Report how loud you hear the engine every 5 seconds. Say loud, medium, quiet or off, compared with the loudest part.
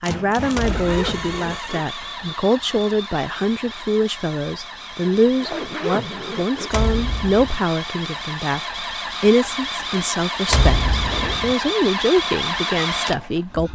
medium, medium, loud.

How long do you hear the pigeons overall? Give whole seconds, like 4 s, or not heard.
not heard.